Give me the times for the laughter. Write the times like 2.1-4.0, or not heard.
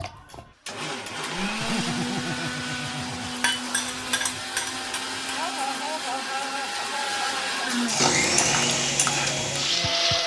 1.5-3.4, 5.3-7.5.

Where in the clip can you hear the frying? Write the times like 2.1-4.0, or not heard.
3.2-5.5, 7.8-10.2.